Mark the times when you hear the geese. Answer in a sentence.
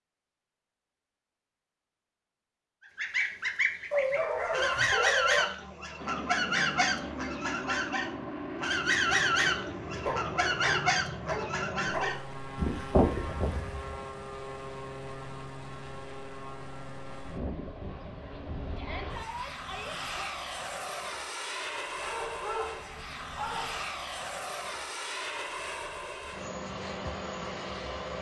The geese can be heard from 3.0 to 14.1 s.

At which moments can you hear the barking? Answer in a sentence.
The barking can be heard from 3.9 to 5.5 s, from 10.0 to 12.2 s and from 22.0 to 23.8 s.